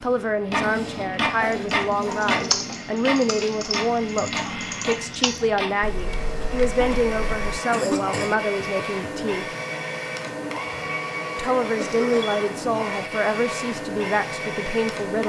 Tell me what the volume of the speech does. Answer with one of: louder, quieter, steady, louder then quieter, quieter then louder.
steady.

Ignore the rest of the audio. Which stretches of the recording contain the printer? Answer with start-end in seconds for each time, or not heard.
0.0-15.2.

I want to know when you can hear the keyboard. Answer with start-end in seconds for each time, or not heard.
1.7-7.3.